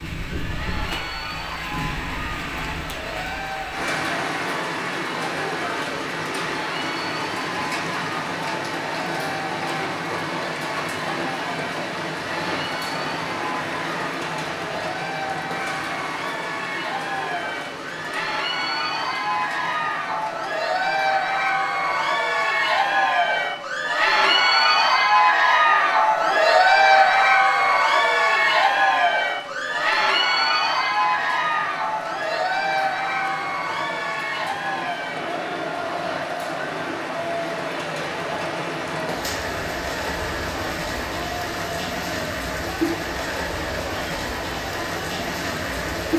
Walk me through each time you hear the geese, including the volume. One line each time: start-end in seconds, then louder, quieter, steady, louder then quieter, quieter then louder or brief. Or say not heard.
not heard.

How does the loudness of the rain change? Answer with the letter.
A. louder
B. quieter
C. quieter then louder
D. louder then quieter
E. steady
C.